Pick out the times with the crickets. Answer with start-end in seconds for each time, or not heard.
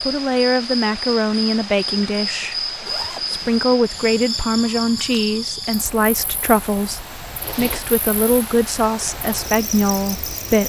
0.0-10.6.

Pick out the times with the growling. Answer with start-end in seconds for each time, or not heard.
not heard.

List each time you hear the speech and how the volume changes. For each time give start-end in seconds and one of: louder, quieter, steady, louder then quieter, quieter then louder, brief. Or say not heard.
0.0-2.6 brief
3.2-10.6 steady.